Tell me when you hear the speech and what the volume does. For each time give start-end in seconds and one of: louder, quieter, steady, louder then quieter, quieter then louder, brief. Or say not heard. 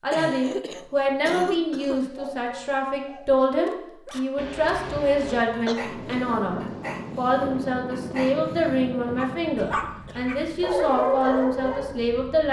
0.0-12.4 steady.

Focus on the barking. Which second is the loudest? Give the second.
11 s.